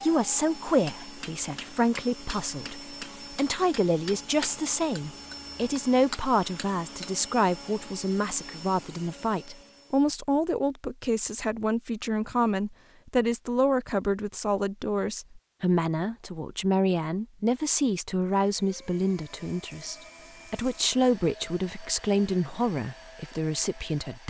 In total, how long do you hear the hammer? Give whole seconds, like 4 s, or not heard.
6 s.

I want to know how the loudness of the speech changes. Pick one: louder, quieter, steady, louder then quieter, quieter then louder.
steady.